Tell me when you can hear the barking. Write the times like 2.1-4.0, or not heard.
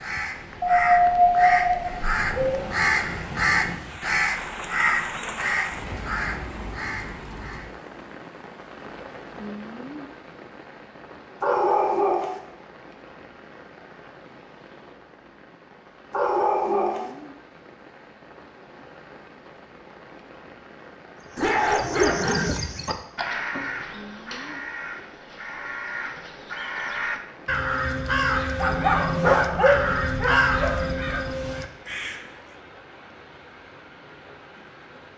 0.6-2.6, 11.4-12.4, 16.1-17.1, 21.4-22.6, 28.6-31.2.